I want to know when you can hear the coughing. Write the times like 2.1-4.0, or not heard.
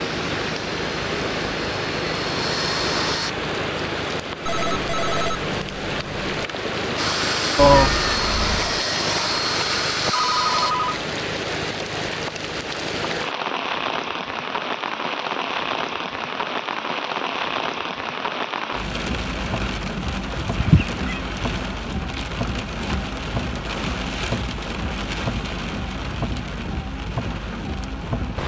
not heard.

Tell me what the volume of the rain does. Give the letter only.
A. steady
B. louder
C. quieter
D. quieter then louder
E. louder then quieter
A.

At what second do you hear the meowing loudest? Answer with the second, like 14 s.
8 s.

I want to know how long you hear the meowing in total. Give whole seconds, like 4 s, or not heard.
2 s.